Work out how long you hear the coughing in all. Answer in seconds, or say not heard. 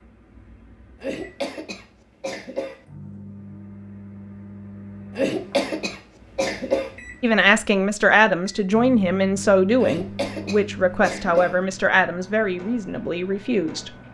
5 s.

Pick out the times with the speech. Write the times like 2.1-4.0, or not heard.
7.2-13.9.